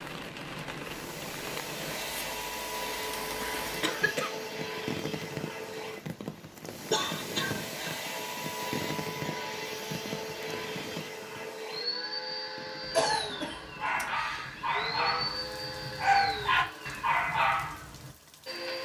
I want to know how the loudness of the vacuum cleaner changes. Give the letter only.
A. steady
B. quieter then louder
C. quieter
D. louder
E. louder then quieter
A.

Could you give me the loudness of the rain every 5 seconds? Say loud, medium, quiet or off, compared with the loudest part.
loud, loud, medium, quiet.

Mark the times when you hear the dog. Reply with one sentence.
You can hear the dog from 13.1 to 18.1 s.